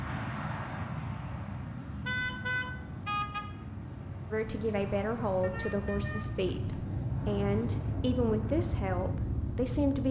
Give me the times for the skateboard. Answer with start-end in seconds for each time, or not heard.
not heard.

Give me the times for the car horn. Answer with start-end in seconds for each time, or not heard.
2.0-3.5, 5.4-6.8.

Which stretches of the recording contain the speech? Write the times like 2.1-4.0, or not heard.
4.3-10.0.